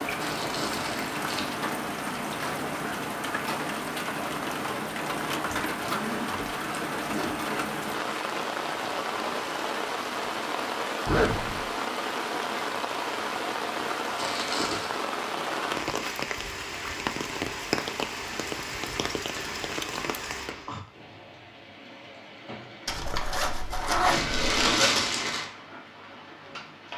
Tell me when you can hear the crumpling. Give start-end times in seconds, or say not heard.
0.2-1.4, 14.2-14.9, 24.1-25.4.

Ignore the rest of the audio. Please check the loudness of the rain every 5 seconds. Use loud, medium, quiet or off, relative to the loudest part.
loud, loud, loud, loud, medium, quiet.